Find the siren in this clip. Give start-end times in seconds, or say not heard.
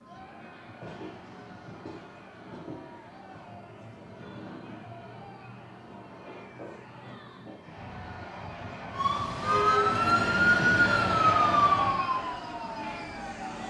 8.9-13.6.